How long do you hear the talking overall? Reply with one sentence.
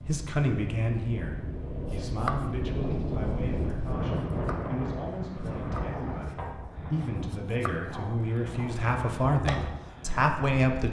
You can hear the talking for 11 seconds altogether.